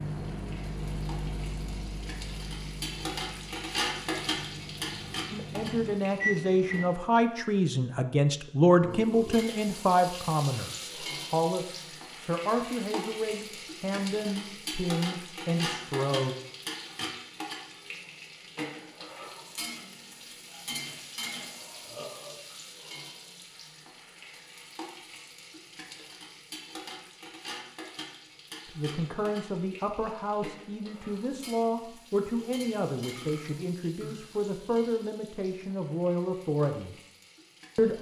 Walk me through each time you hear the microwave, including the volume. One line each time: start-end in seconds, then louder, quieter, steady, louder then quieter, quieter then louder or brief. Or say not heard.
0.0-7.0 quieter then louder.